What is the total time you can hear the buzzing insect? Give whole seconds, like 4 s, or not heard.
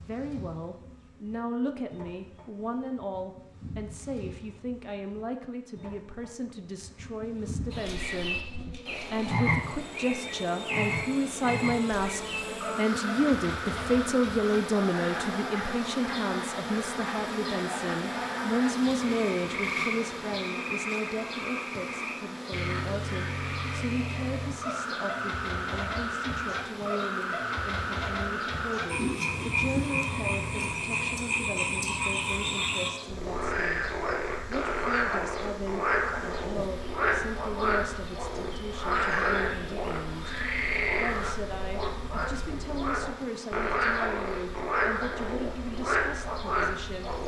47 s.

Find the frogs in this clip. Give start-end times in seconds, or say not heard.
7.7-47.2.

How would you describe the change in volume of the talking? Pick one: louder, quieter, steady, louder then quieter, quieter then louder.
louder then quieter.